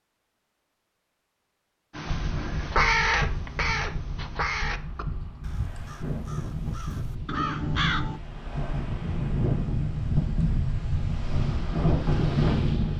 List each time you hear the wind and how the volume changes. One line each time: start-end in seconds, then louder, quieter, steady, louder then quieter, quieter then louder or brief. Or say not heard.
2.0-12.9 louder.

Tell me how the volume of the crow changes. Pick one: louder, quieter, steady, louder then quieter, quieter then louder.
quieter then louder.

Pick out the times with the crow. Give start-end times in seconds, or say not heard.
1.9-8.2.